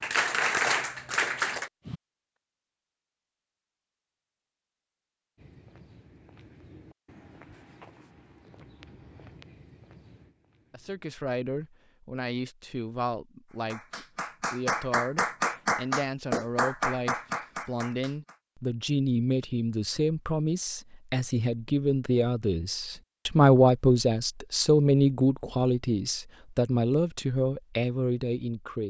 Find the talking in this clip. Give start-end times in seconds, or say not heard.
10.7-28.8.